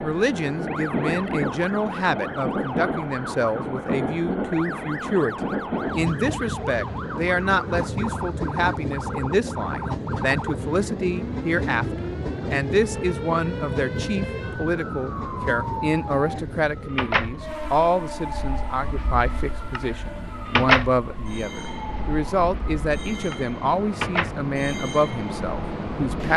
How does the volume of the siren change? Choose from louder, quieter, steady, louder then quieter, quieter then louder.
louder.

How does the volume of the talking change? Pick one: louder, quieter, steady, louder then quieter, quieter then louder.
steady.